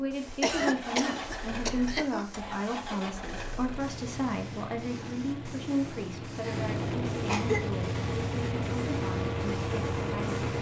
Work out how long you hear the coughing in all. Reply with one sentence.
You can hear the coughing for 3 seconds altogether.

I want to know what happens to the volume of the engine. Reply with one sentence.
The volume of the engine goes up.